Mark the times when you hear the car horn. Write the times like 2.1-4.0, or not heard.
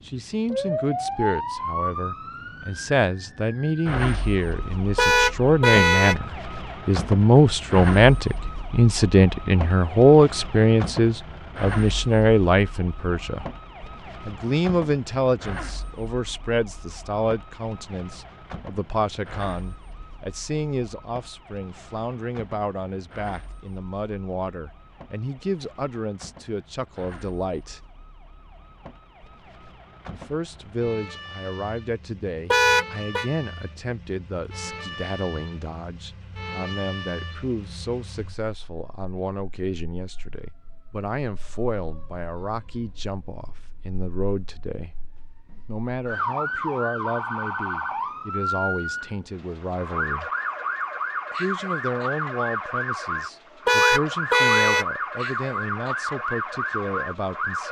5.0-6.2, 32.5-33.2, 53.6-54.9.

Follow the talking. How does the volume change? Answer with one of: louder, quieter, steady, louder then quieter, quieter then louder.
quieter.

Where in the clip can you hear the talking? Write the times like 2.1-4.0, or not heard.
0.1-13.4, 14.2-27.8, 30.1-45.0, 45.6-50.3, 51.4-57.6.